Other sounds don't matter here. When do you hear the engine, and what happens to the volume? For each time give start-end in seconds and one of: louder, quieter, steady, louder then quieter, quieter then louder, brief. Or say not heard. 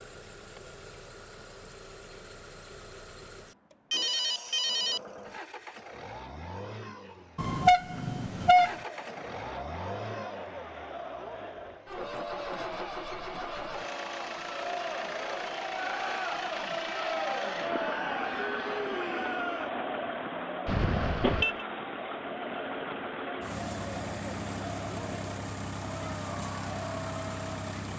0.0-27.9 louder.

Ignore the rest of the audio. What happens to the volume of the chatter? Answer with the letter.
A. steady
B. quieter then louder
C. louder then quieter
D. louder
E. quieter
C.